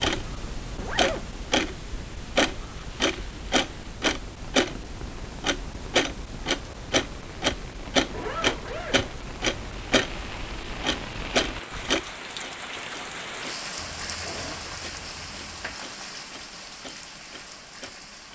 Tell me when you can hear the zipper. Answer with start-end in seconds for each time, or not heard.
0.8-1.3, 8.1-9.1, 14.0-15.8.